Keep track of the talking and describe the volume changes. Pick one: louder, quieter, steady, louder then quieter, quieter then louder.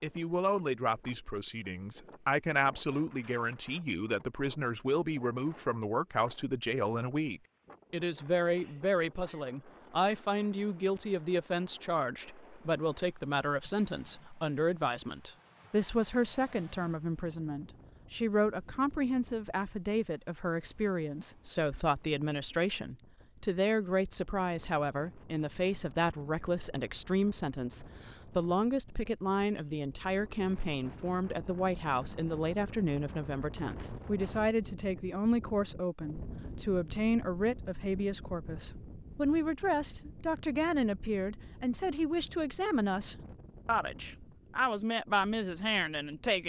steady.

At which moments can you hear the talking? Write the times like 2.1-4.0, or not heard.
0.0-46.4.